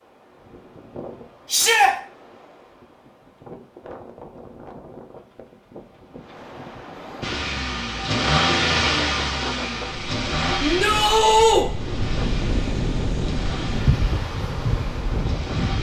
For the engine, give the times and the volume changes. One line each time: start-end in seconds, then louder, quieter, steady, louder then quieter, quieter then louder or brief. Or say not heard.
7.2-15.7 quieter.